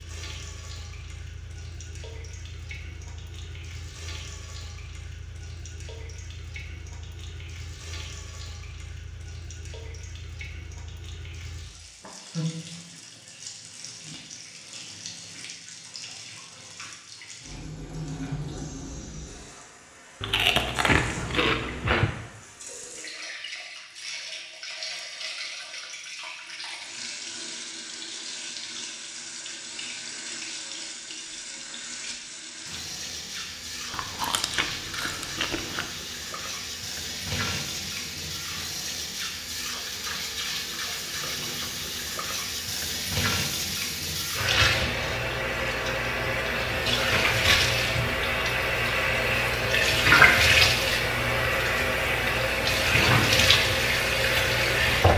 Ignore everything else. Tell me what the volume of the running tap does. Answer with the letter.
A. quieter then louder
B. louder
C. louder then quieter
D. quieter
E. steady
B.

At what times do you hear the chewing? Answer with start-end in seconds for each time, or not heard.
20.2-22.1, 33.9-35.9.